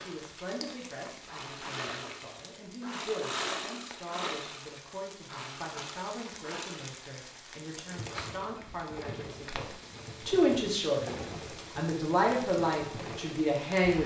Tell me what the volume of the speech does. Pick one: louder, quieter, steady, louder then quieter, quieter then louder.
louder.